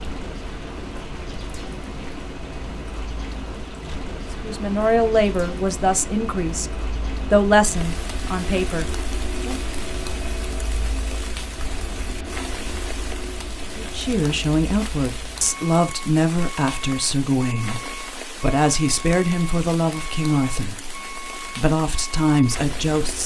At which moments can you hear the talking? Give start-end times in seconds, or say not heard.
4.4-9.6, 13.8-23.2.